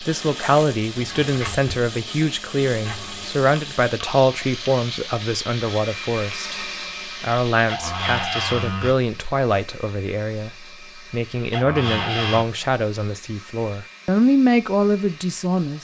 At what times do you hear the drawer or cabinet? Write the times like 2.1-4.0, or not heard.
0.9-1.9, 2.8-3.3, 7.7-8.9, 11.5-12.4.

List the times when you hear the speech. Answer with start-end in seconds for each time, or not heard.
0.0-15.7.